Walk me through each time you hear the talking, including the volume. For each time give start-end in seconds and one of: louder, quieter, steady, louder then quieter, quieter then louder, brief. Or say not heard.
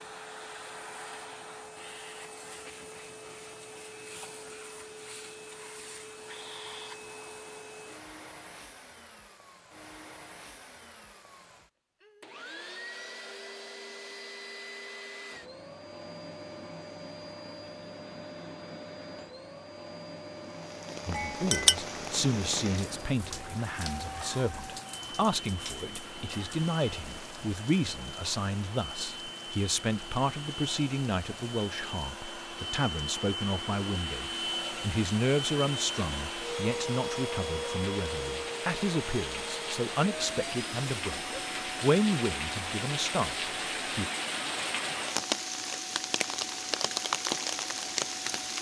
21.1-44.1 steady.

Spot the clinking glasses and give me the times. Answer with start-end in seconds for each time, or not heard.
21.1-21.8.